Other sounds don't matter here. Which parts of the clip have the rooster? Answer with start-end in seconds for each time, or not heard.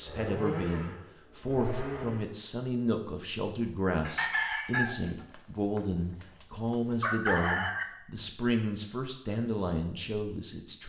4.0-7.8.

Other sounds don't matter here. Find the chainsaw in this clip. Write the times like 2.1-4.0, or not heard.
0.0-2.3.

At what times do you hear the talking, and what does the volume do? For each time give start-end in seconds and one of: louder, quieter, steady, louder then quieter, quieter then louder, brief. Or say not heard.
0.0-10.8 steady.